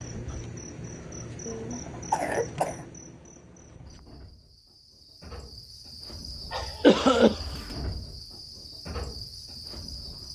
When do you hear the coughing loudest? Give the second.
7 s.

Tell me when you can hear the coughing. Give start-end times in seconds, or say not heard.
1.4-2.9, 6.5-7.6.